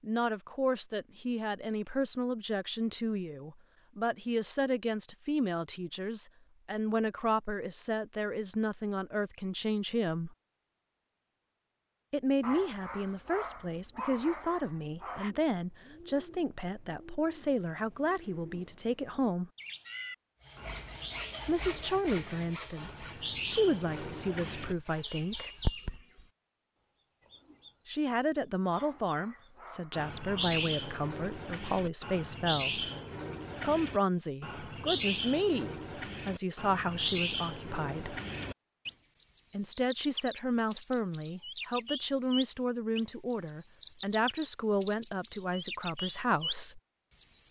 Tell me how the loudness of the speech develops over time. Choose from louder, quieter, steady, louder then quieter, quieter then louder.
steady.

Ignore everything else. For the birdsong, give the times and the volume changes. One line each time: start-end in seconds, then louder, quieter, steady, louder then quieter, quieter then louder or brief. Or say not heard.
15.2-47.4 louder.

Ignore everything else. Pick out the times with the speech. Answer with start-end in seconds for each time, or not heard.
0.0-10.3, 12.1-19.5, 21.4-25.5, 27.9-32.9, 33.6-38.2, 39.5-46.8.